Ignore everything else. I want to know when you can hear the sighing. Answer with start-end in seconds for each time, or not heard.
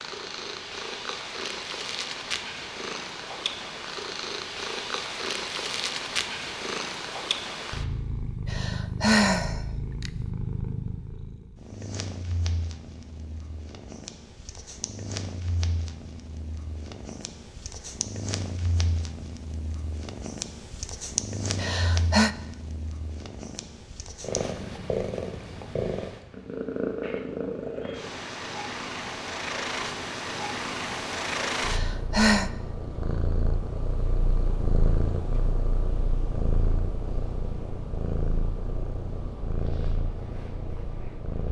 8.5-10.1, 21.6-22.3, 31.6-32.5.